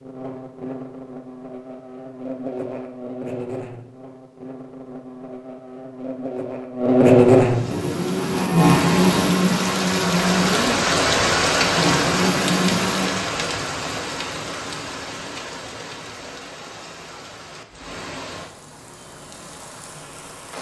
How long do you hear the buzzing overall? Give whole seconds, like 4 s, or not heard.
13 s.